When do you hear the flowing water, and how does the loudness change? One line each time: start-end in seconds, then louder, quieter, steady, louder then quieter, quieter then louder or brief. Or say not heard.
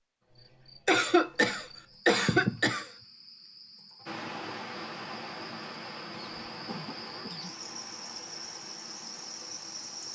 4.0-10.1 quieter.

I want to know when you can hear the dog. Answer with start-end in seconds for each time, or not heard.
not heard.